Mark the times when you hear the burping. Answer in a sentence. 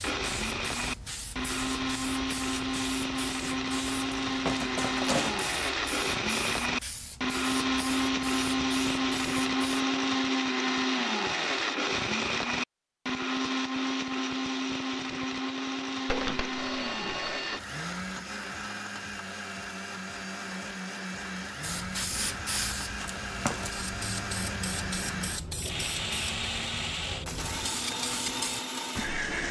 You can't hear the burping here.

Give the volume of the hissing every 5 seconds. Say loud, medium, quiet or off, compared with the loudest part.
loud, loud, off, off, loud, loud.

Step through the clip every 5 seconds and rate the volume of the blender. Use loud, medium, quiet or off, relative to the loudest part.
loud, loud, loud, medium, medium, medium.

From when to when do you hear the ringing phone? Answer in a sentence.
You can hear the ringing phone from 16.1 to 17.6 s.